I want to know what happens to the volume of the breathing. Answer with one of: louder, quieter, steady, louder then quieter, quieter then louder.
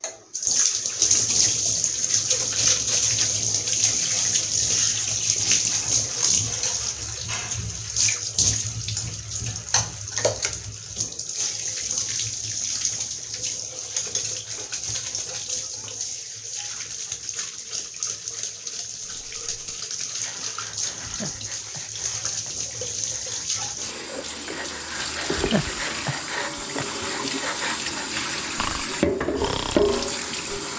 louder.